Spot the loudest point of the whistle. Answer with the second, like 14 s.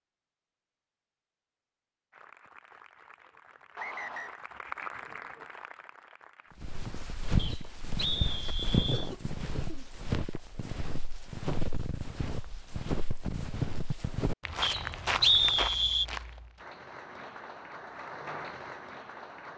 15 s.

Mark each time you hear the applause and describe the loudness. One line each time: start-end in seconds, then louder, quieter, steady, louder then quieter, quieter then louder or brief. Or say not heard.
2.1-6.5 louder then quieter
16.6-19.5 brief.